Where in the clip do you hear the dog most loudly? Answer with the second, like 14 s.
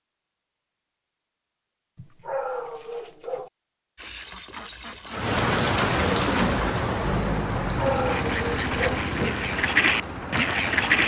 8 s.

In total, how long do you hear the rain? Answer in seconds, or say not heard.
6 s.